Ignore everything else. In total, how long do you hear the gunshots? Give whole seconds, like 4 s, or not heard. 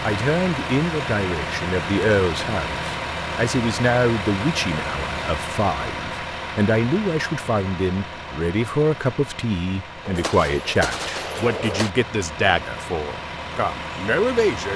2 s.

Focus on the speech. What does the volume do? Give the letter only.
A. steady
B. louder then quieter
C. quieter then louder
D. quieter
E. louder
A.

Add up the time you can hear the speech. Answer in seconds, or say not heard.
15 s.